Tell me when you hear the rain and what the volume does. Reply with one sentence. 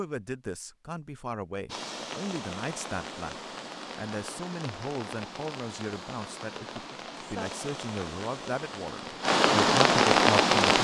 You can hear the rain from 1.6 to 10.7 s, getting louder.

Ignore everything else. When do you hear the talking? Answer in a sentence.
You can hear the talking from 0.0 to 10.6 s.